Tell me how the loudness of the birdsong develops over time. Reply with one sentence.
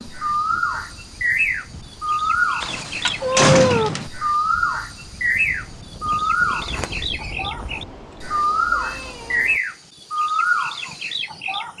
The volume of the birdsong stays about the same.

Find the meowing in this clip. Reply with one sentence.
The meowing can be heard from 3.2 to 3.9 s and from 7.5 to 9.6 s.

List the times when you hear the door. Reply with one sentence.
You can hear the door from 2.6 to 4.1 s and from 6.6 to 7.3 s.